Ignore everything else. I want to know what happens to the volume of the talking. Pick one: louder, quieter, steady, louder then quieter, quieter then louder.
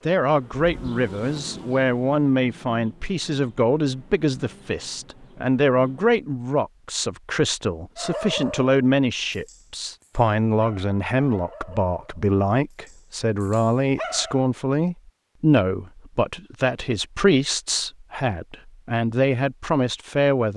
steady.